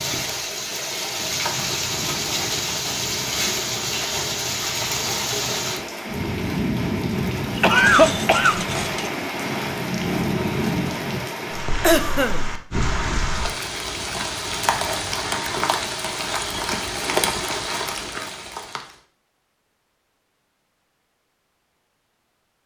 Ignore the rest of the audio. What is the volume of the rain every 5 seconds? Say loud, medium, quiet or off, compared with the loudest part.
loud, loud, loud, loud, off.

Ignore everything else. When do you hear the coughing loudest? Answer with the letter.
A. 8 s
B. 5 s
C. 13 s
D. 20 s
A.